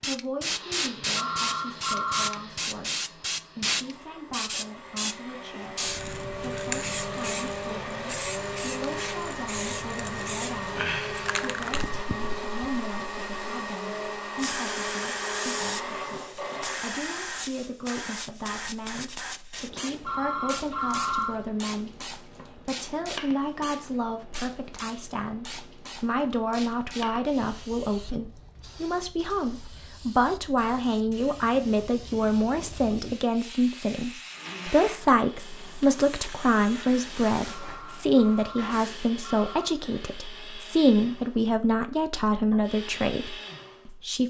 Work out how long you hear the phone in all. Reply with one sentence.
You can hear the phone for 5 seconds altogether.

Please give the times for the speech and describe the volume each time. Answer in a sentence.
You can hear the speech from 0.0 to 44.2 s, getting louder.